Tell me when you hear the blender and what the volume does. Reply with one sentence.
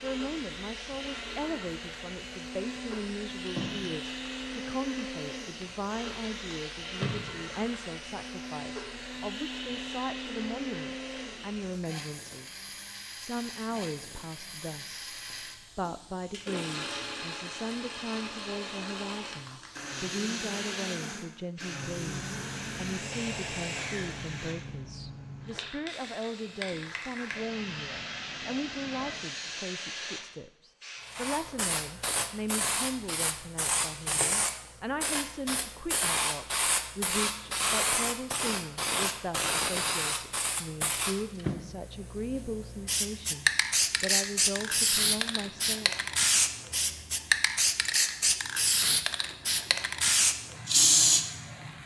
You can hear the blender from 0.0 to 24.9 s, at a steady volume.